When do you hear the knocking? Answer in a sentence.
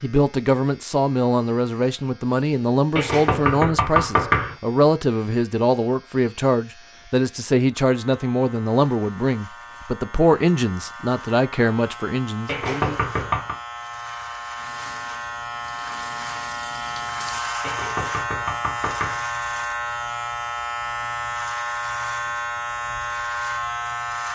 You can hear the knocking from 3.0 to 4.5 s, from 12.4 to 13.6 s and from 17.6 to 19.2 s.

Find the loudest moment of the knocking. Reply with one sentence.
The volume of the knocking peaks at 4 seconds.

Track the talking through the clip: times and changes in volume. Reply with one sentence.
You can hear the talking from 0.0 to 12.9 s, at a steady volume.